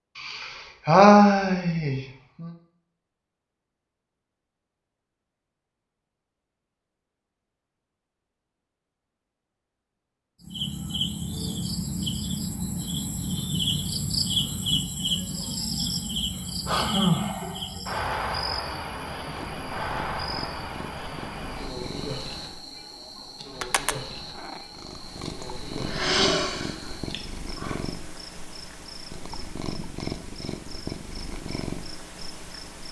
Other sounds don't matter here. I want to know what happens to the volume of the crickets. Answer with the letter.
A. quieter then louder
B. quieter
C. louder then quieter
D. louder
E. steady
B.